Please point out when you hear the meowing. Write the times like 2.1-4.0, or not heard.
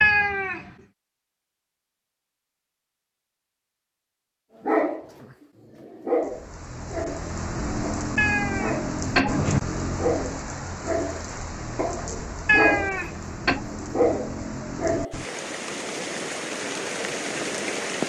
0.0-0.7, 8.2-9.6, 12.4-13.6.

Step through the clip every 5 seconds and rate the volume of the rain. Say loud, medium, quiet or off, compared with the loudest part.
off, loud, medium, loud.